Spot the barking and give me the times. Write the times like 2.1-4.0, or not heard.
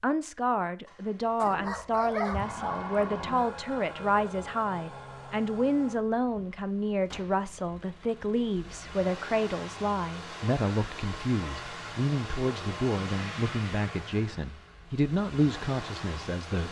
1.4-3.0.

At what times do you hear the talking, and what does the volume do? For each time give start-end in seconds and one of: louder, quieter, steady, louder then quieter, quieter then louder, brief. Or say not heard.
0.0-16.6 steady.